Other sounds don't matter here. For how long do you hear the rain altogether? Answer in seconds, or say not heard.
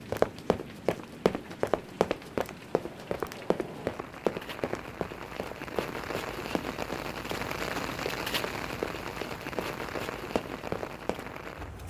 12 s.